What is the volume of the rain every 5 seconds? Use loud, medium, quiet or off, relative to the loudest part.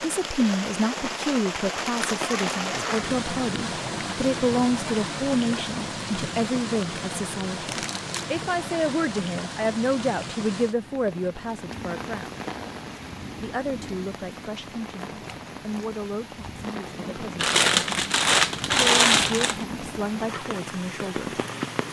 loud, loud, medium, medium, loud.